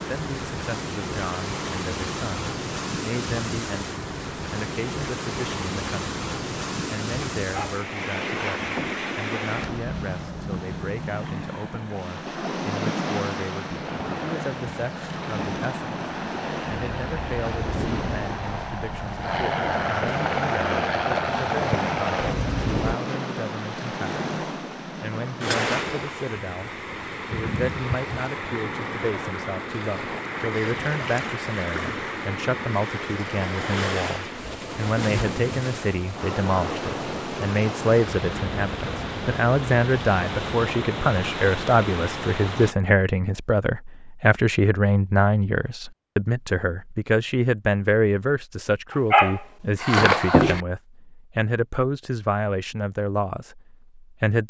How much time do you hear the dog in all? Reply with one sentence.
You can hear the dog for 3 seconds altogether.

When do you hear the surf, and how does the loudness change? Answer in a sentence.
You can hear the surf from 0.0 to 42.8 s, at a steady volume.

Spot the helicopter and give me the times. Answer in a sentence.
The helicopter can be heard from 13.8 to 22.9 s.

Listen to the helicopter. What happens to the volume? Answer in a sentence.
The loudness of the helicopter goes up.